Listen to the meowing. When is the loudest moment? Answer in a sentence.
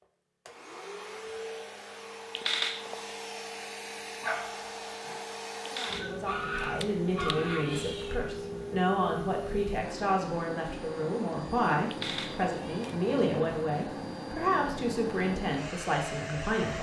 The loudest moment of the meowing is at 3 seconds.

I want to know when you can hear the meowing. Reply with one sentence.
The meowing can be heard from 2.4 to 3.1 s, from 5.7 to 8.2 s and from 11.9 to 13.0 s.